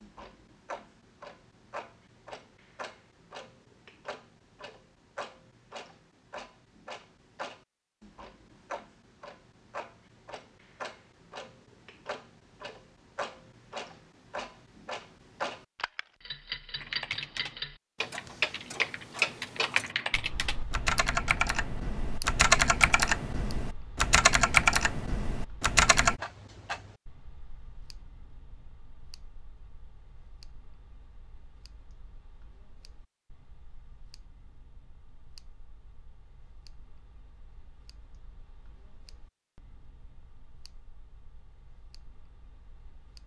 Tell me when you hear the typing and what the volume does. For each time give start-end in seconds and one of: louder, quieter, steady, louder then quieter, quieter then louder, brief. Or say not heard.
16.8-26.2 louder.